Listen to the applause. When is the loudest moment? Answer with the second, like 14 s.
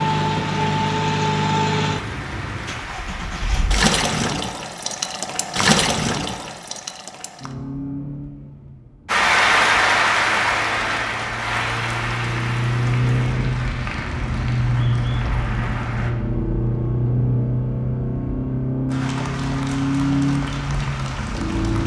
10 s.